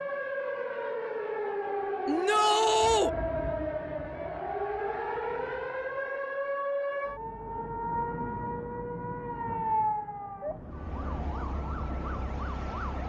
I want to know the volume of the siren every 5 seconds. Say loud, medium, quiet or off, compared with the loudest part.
loud, loud, medium.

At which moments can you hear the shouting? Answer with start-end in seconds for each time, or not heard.
2.0-3.1.